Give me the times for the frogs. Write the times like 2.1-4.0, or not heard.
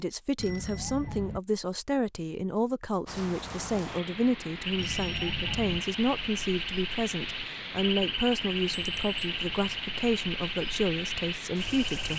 4.6-12.1.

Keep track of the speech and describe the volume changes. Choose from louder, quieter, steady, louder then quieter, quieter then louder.
steady.